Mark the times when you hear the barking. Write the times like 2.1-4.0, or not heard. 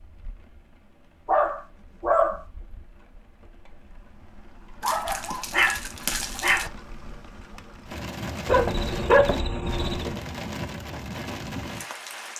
1.2-2.5, 4.8-6.7, 8.4-10.2.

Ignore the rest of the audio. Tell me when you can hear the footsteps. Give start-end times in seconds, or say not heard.
not heard.